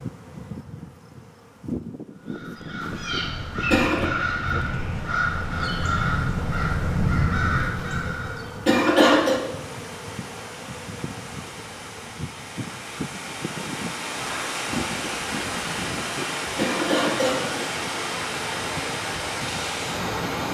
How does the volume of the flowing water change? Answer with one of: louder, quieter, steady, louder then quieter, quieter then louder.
louder.